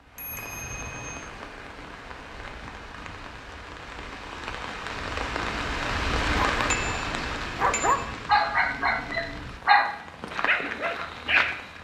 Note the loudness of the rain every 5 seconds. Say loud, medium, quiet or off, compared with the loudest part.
medium, loud, medium.